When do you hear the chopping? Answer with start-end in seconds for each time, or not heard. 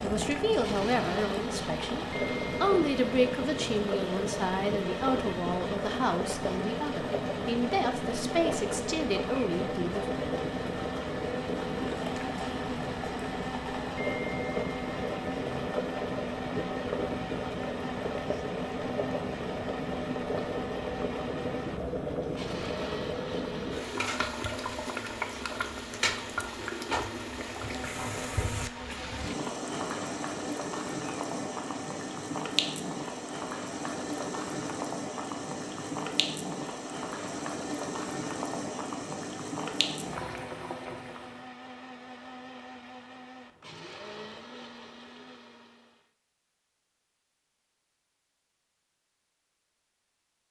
not heard.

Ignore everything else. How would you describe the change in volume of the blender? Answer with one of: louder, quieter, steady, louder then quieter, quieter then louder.
quieter.